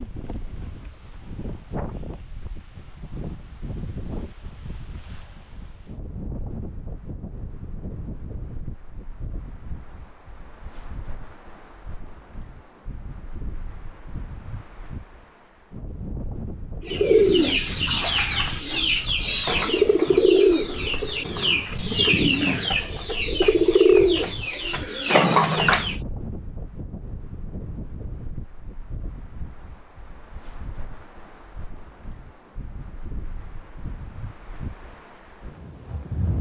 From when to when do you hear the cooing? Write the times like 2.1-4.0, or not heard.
16.9-26.0.